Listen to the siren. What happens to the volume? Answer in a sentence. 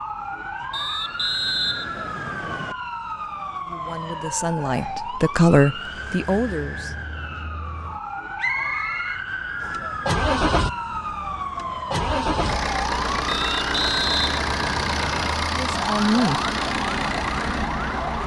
The loudness of the siren stays about the same.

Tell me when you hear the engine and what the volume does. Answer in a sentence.
You can hear the engine from 9.6 to 18.2 s, at a steady volume.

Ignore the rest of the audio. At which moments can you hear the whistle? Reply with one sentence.
You can hear the whistle from 0.7 to 2.8 s, from 8.3 to 9.8 s and from 13.2 to 15.3 s.